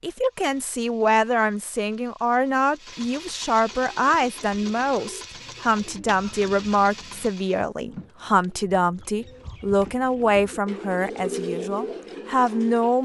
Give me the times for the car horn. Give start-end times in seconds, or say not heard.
not heard.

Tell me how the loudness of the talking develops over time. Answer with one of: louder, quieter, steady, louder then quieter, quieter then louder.
steady.